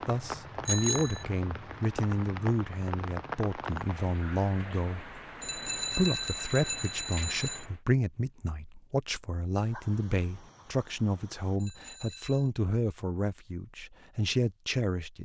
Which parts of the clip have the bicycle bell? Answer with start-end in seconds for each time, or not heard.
0.7-1.2, 5.4-7.7, 11.6-12.5.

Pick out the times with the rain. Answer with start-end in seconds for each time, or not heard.
0.0-7.8.